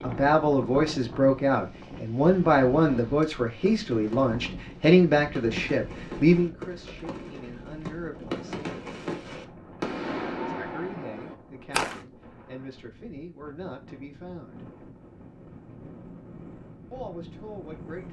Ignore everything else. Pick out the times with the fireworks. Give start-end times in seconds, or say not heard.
2.9-12.0.